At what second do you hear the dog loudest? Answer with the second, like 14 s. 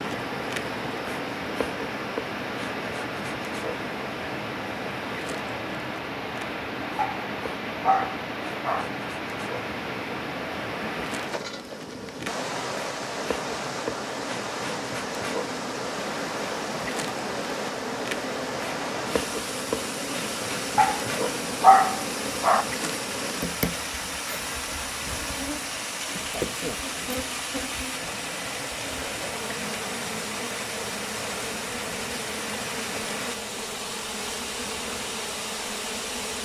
22 s.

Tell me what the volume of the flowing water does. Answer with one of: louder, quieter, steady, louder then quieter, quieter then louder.
steady.